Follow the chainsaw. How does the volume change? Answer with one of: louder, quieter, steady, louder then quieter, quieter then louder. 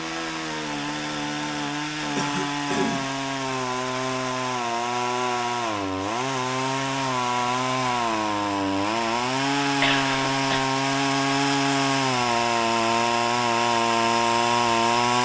louder.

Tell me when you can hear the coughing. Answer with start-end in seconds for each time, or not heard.
2.1-3.1, 9.8-10.7.